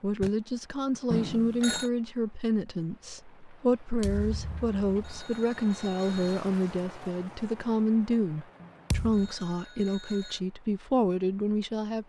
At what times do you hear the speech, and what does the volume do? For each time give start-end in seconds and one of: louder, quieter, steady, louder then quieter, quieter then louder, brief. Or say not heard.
0.0-12.0 steady.